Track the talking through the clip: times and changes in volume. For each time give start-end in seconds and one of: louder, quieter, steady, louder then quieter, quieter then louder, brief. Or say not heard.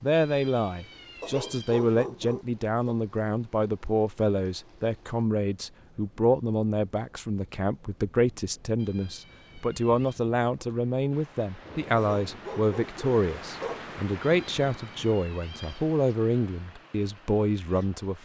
0.0-18.2 steady.